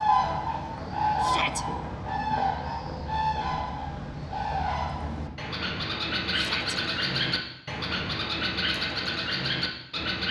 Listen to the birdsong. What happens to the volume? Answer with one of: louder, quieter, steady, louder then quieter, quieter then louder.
steady.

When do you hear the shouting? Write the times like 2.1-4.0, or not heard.
1.2-1.6, 6.3-6.8.